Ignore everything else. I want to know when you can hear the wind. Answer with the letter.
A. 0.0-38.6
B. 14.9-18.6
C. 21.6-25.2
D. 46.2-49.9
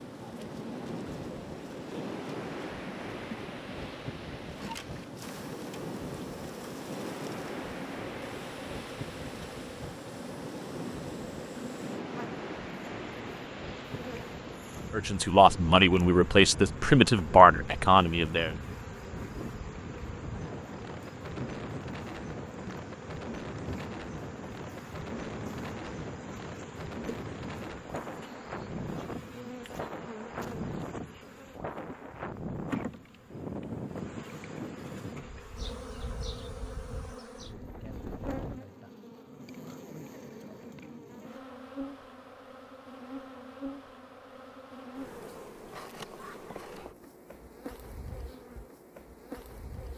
A.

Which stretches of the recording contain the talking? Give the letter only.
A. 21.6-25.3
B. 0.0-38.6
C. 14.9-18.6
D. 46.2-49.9
C.